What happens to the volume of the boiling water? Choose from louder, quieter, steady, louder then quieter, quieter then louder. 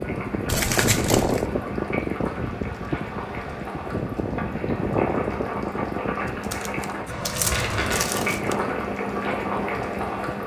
louder.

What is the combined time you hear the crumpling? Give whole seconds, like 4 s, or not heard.
3 s.